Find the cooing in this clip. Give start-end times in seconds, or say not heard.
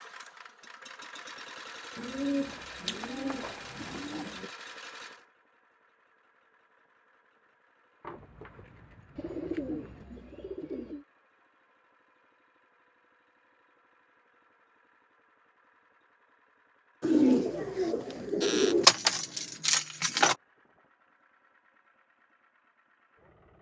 1.9-4.5, 9.2-11.1, 17.0-18.9.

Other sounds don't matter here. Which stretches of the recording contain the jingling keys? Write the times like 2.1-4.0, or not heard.
2.5-3.7, 8.0-10.1, 18.8-20.4.